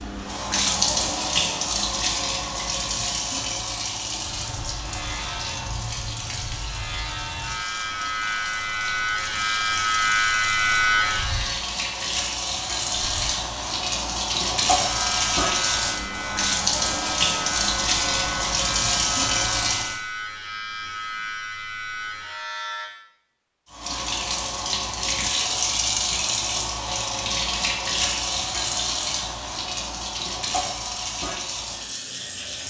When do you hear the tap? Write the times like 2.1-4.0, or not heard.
0.0-20.0, 23.7-32.6.